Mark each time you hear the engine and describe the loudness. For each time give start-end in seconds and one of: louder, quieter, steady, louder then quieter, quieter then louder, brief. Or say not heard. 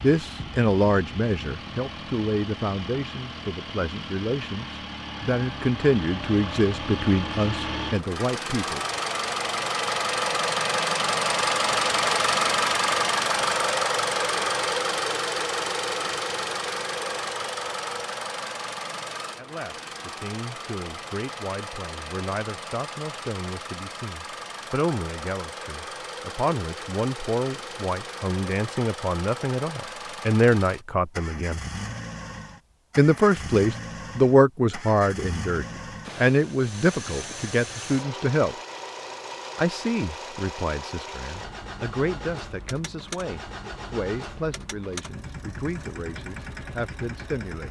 0.0-47.6 louder then quieter.